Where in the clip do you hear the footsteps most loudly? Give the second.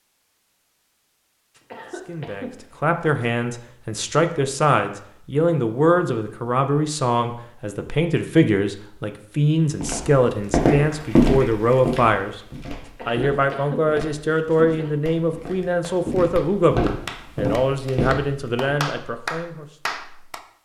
11 s.